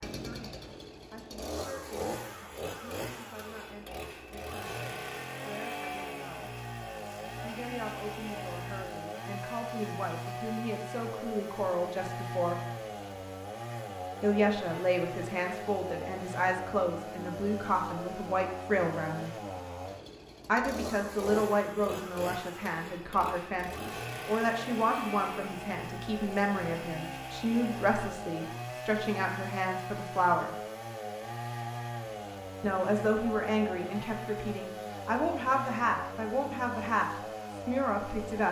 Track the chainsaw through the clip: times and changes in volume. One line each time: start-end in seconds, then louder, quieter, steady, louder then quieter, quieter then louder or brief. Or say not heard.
0.0-38.4 steady.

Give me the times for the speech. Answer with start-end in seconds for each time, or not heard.
0.0-6.5, 7.4-12.6, 14.2-19.4, 20.4-30.5, 32.6-38.4.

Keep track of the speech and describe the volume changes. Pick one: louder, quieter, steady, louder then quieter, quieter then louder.
louder.